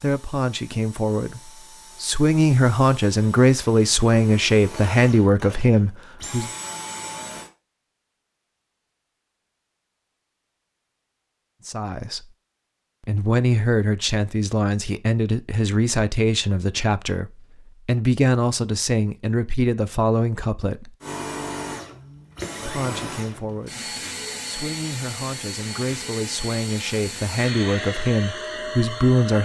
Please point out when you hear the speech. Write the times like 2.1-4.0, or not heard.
0.0-6.5, 11.7-12.3, 13.1-20.9, 22.6-29.3.